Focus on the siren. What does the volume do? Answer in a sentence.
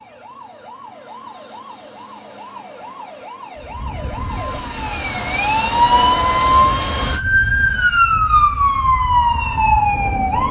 The loudness of the siren goes up.